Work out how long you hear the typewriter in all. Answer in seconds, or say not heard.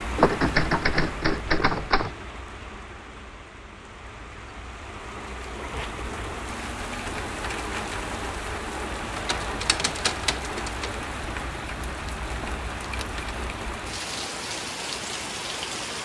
4 s.